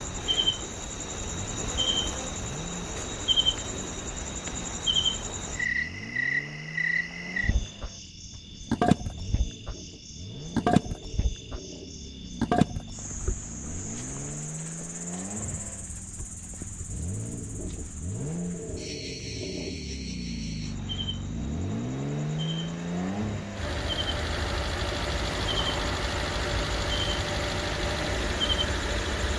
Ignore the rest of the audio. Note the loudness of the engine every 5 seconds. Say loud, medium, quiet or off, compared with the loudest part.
quiet, quiet, medium, medium, loud, loud.